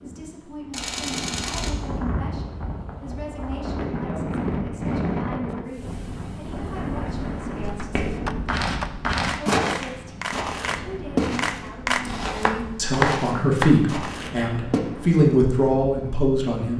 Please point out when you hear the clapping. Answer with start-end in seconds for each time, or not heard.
7.7-14.1.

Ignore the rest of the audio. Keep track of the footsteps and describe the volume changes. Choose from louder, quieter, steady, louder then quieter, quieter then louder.
quieter.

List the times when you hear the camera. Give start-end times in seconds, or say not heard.
0.7-1.7, 12.0-12.7.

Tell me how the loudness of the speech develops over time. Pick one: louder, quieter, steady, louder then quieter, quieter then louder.
louder.